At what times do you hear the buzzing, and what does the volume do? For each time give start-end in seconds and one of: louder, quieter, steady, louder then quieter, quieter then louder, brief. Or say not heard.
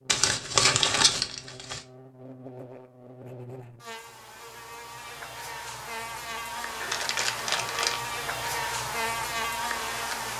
0.0-10.3 louder.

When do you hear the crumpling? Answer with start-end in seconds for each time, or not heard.
0.1-1.8, 6.8-8.0.